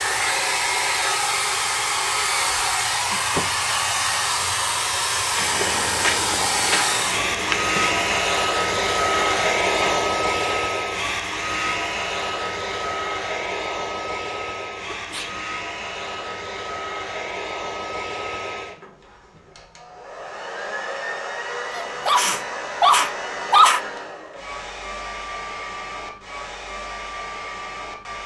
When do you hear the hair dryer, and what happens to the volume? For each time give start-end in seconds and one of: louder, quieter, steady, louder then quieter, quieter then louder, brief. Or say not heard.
0.0-28.2 quieter.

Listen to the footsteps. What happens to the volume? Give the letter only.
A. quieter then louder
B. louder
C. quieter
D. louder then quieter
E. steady
C.